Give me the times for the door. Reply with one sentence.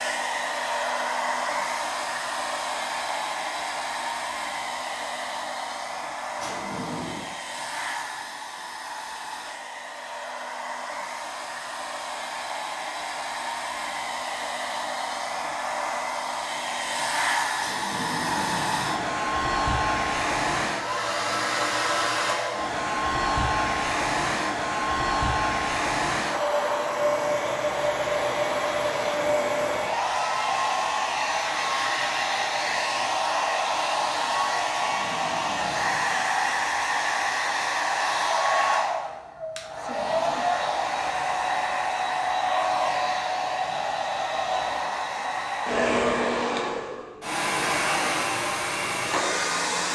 You can hear the door from 6.3 to 7.3 s, from 17.6 to 19.1 s and from 34.7 to 36.2 s.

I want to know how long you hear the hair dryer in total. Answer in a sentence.
You can hear the hair dryer for 50 seconds altogether.